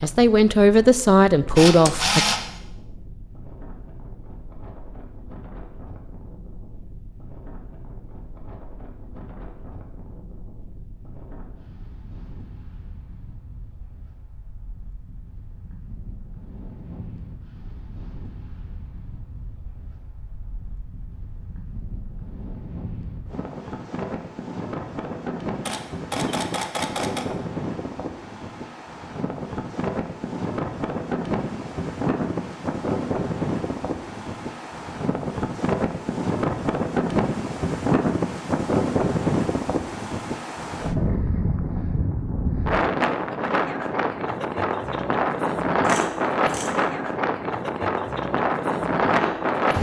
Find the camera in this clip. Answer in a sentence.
The camera can be heard from 1.6 to 2.4 s, from 25.6 to 27.2 s and from 45.8 to 46.8 s.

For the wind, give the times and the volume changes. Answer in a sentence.
The wind can be heard from 0.0 to 49.7 s, getting louder.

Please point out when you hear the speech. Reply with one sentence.
You can hear the speech from 0.0 to 2.2 s.